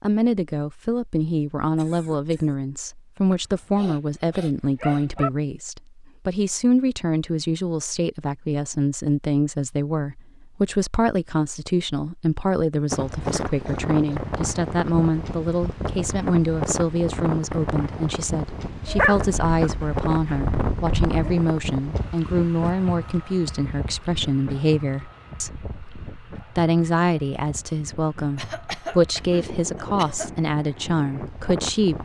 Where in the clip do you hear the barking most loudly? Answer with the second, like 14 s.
19 s.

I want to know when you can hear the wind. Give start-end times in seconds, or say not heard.
12.9-31.9.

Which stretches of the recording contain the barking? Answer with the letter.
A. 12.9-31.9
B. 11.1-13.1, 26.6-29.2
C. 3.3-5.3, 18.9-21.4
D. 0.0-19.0
C.